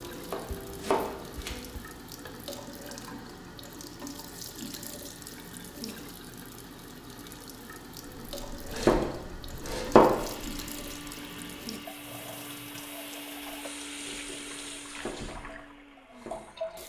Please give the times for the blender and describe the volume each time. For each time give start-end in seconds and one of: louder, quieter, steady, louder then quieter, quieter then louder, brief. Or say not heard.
10.2-16.8 quieter.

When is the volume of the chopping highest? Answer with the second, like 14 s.
10 s.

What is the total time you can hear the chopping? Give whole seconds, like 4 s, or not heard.
7 s.